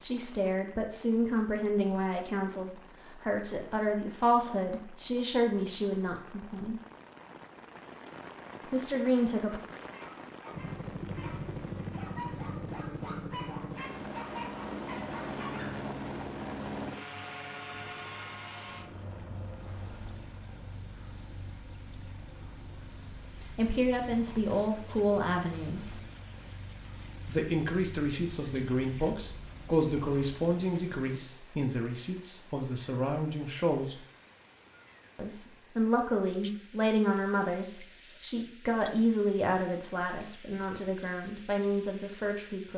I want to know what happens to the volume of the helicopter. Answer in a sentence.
The volume of the helicopter goes down.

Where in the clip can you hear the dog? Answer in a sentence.
The dog can be heard from 9.9 to 15.8 s.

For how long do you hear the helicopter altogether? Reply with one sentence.
You can hear the helicopter for 21 seconds altogether.